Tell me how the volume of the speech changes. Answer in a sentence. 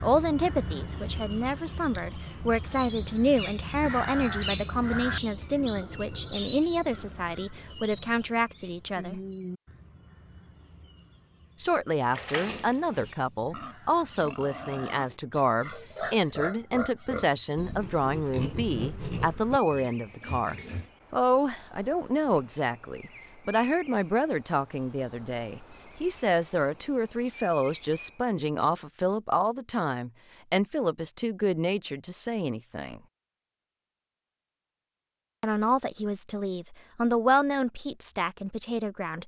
The volume of the speech stays about the same.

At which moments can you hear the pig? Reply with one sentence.
You can hear the pig from 12.3 to 20.9 s.